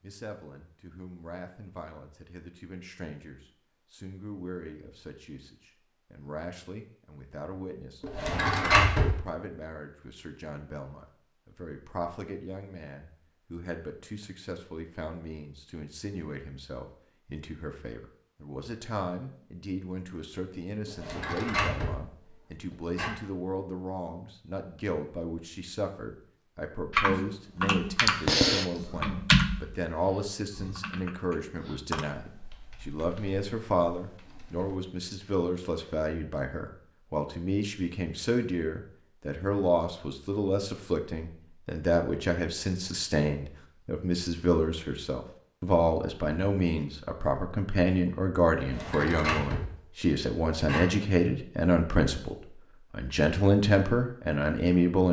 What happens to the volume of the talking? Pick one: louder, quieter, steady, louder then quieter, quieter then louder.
louder.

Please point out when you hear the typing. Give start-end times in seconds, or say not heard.
26.9-34.8.